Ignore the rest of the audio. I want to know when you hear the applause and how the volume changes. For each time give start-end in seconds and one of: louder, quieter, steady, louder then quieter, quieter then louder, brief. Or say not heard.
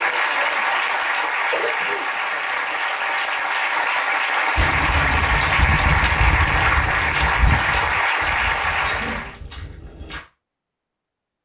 0.0-9.4 steady.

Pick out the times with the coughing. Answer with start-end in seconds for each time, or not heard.
1.5-2.7, 8.8-9.4.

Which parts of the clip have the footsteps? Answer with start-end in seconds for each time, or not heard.
4.5-10.2.